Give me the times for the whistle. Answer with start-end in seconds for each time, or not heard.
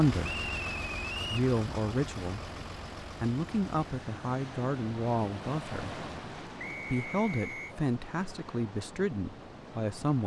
0.2-1.4, 6.5-7.8.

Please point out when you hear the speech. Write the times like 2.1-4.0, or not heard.
0.0-0.4, 1.2-2.5, 3.2-6.0, 6.8-10.2.